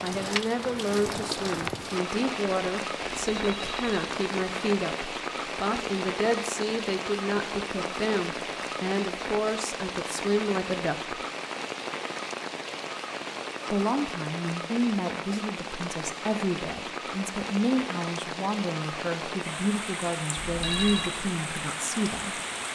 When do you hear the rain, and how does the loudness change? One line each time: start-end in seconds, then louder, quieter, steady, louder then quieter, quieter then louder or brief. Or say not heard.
0.0-22.7 steady.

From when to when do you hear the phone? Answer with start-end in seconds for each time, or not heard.
3.1-4.0, 20.4-21.1.